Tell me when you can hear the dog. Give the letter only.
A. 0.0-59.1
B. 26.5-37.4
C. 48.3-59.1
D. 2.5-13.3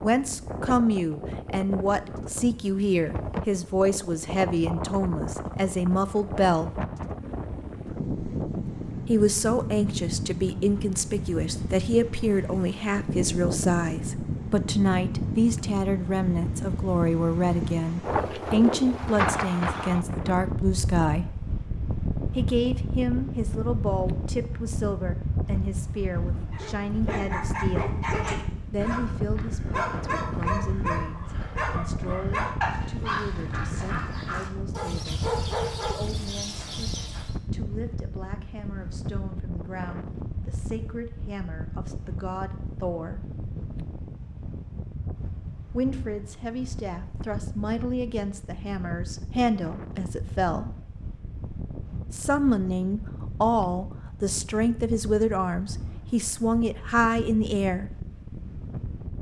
B.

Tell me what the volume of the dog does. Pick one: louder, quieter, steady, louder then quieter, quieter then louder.
steady.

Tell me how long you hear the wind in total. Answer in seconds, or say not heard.
59 s.